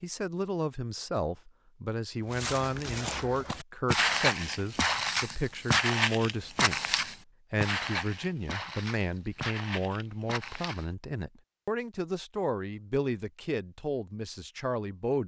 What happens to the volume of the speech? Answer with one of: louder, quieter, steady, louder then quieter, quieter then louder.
steady.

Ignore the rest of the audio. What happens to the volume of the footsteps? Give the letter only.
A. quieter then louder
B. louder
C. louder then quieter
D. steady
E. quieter
E.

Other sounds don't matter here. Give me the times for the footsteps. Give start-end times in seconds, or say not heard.
2.3-10.8.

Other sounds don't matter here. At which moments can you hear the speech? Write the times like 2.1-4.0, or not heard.
0.0-15.2.